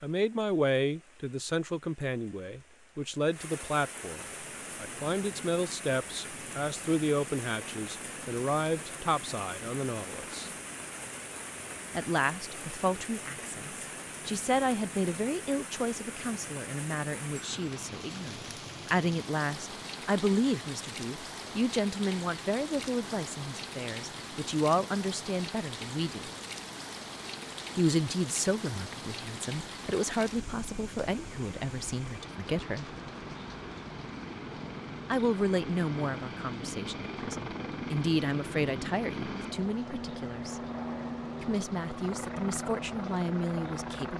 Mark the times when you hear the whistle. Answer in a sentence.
The whistle can't be heard in this clip.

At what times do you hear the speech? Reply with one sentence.
The speech can be heard from 0.0 to 10.5 s, from 11.9 to 26.3 s, from 27.8 to 32.9 s, from 35.1 to 40.6 s and from 41.4 to 44.1 s.